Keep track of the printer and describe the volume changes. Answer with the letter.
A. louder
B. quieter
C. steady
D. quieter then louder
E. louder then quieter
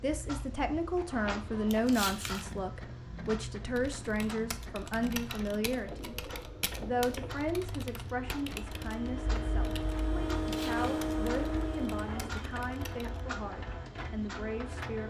E.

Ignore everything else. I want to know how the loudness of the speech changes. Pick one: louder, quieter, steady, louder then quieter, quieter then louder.
quieter.